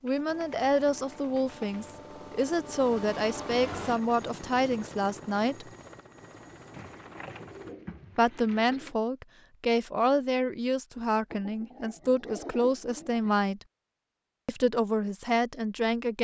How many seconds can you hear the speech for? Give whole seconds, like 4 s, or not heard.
13 s.